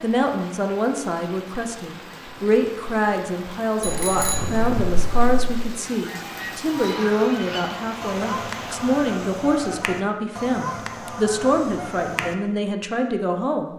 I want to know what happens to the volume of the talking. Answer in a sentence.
The volume of the talking stays about the same.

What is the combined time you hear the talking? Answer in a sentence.
The talking can be heard for 14 seconds in total.